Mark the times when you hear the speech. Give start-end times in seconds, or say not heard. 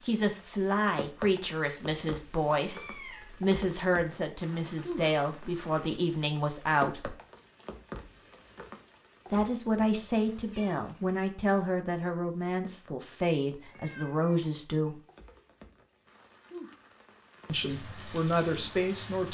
0.0-7.2, 9.3-14.9, 17.4-19.2.